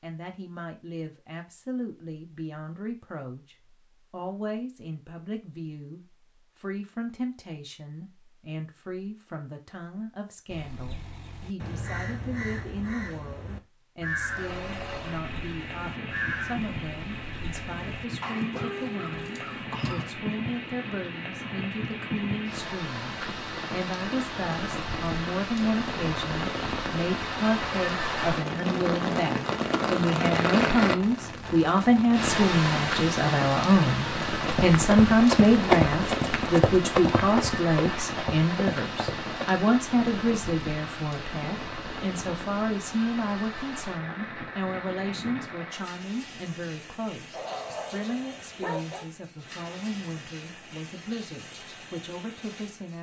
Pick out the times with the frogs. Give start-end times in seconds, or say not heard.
not heard.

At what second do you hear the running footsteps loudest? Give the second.
36 s.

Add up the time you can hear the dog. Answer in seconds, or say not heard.
2 s.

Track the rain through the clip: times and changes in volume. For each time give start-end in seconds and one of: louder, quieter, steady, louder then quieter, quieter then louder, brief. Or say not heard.
14.2-52.9 louder then quieter.